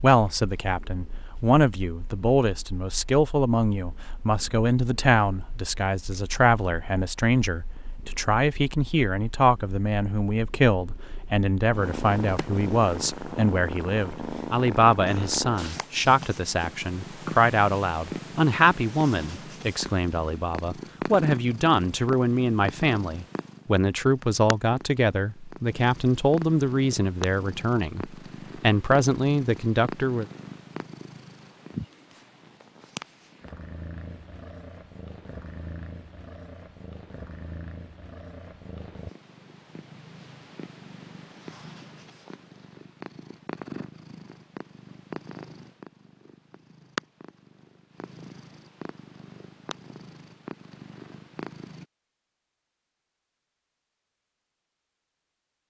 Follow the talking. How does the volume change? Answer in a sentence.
The loudness of the talking stays about the same.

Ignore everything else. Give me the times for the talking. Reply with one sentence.
The talking can be heard from 0.0 to 30.2 s.